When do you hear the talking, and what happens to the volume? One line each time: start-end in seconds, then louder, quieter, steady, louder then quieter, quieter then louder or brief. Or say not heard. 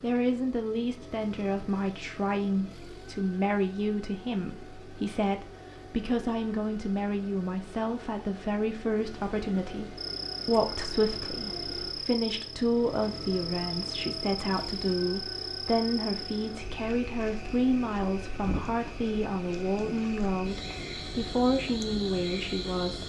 0.0-23.0 steady.